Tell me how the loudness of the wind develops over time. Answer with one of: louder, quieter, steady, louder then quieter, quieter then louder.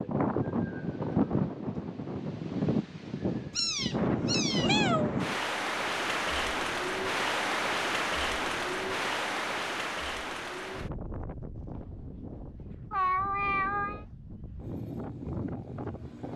quieter.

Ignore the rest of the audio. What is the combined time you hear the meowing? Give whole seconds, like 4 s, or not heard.
3 s.